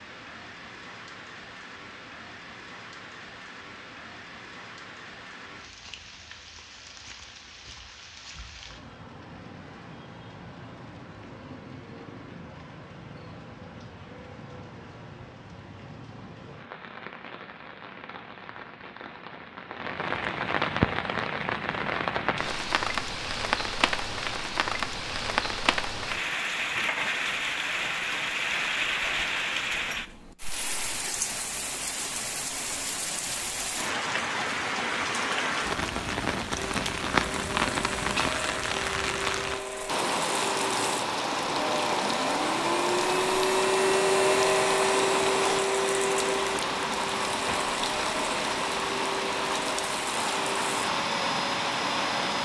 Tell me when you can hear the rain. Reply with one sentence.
You can hear the rain from 0.0 to 52.4 s.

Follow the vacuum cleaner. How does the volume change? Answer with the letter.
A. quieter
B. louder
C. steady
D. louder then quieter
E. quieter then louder
D.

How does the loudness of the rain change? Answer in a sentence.
The loudness of the rain goes up.